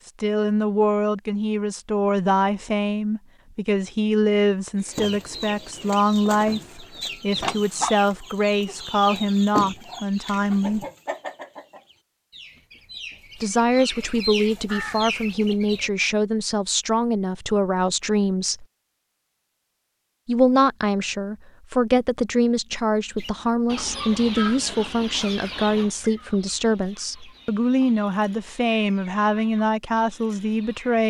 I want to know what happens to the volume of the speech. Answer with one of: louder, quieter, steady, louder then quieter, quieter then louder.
steady.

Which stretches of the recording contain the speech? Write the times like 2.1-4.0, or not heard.
0.1-10.8, 13.4-18.6, 20.2-31.0.